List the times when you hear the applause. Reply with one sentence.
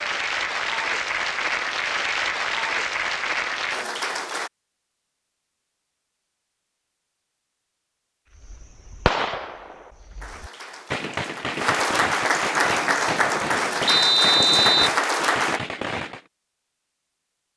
The applause can be heard from 0.0 to 4.5 s and from 10.2 to 15.6 s.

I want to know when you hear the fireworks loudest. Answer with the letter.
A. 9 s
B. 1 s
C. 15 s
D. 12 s
A.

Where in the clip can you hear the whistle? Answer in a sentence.
You can hear the whistle from 13.8 to 15.0 s.